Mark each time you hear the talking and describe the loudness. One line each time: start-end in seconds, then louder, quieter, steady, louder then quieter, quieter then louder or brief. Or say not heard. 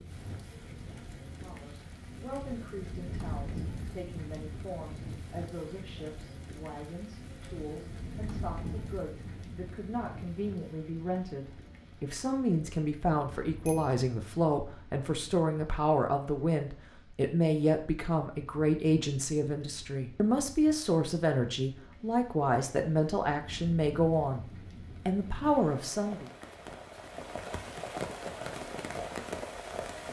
1.4-24.4 louder
25.1-26.2 brief.